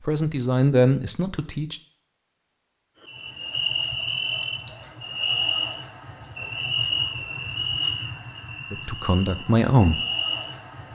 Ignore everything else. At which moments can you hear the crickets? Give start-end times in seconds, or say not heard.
3.0-10.9.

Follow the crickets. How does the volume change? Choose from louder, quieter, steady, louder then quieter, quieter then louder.
steady.